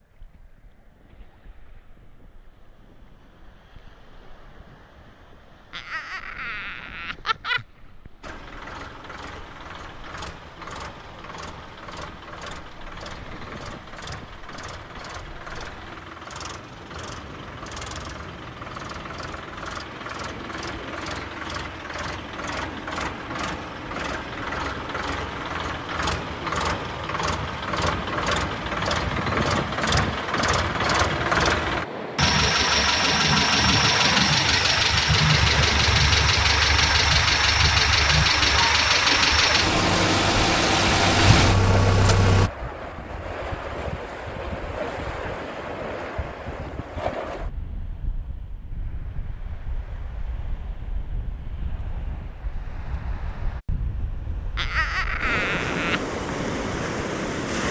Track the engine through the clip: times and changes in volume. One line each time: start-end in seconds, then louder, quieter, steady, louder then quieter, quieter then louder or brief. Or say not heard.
8.2-42.5 louder.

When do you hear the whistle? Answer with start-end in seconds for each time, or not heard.
not heard.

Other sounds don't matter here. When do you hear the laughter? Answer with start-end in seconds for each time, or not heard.
5.7-7.7, 54.5-56.0.